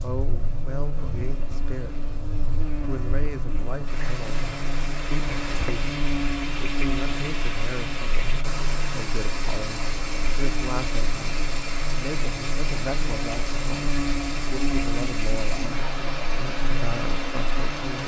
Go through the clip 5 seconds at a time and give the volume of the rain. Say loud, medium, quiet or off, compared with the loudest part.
medium, loud, loud, loud.